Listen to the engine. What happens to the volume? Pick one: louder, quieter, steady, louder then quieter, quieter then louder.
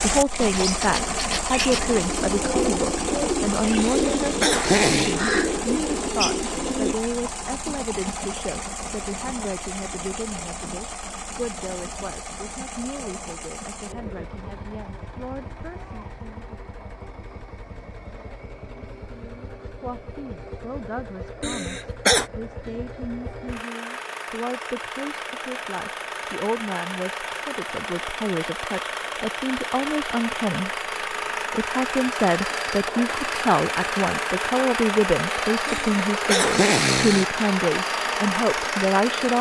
quieter then louder.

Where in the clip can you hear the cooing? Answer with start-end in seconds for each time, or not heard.
0.3-7.0.